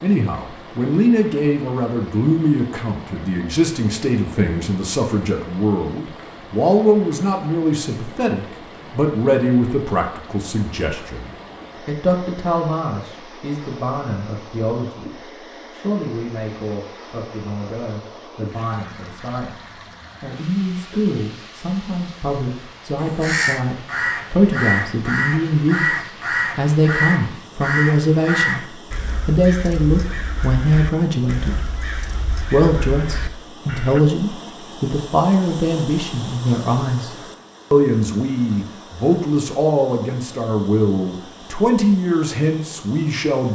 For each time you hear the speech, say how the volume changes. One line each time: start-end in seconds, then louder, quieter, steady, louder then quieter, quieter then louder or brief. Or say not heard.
0.0-31.8 quieter then louder
32.5-43.5 steady.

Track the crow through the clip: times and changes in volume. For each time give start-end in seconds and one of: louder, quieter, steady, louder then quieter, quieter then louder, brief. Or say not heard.
23.0-34.0 quieter.